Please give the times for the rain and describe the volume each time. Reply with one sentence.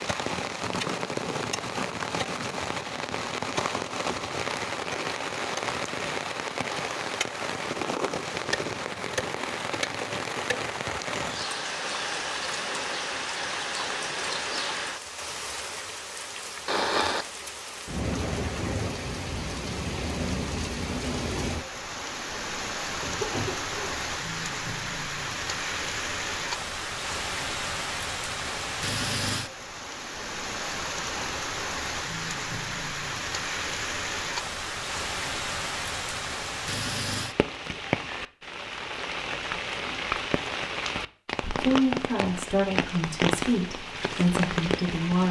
You can hear the rain from 0.0 to 45.2 s, at a steady volume.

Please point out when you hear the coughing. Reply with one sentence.
You can hear the coughing from 23.0 to 23.9 s.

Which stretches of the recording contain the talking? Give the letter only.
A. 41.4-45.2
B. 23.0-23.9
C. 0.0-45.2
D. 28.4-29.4
A.